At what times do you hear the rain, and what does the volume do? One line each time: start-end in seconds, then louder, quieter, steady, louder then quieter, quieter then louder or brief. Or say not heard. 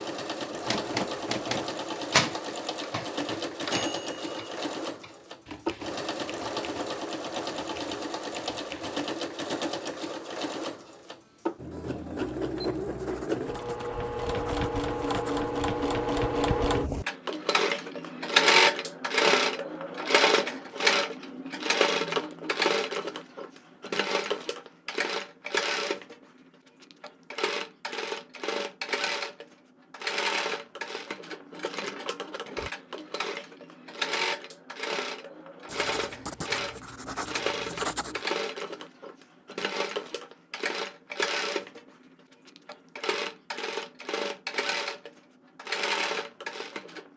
not heard.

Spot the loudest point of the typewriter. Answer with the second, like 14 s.
2 s.